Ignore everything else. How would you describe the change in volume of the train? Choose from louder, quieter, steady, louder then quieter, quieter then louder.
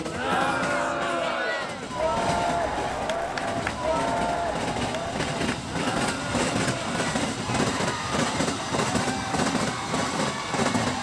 louder.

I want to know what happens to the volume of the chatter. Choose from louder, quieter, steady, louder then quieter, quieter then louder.
quieter.